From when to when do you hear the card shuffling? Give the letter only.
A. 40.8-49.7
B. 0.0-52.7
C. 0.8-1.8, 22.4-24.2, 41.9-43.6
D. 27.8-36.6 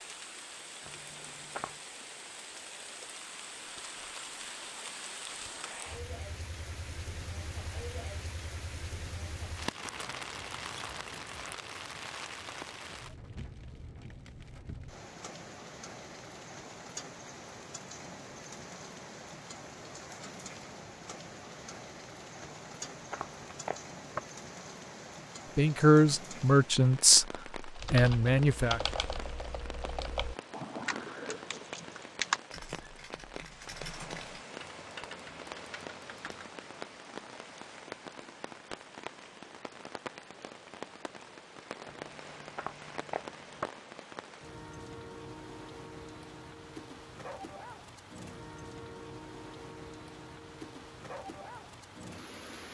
C.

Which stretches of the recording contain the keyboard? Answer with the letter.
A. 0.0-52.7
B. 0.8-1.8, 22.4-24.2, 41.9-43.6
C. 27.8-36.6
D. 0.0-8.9
C.